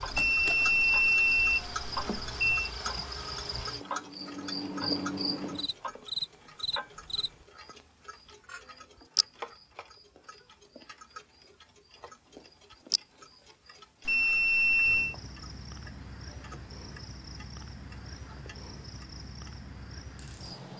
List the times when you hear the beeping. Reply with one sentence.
The beeping can be heard from 0.1 to 2.7 s and from 14.1 to 15.2 s.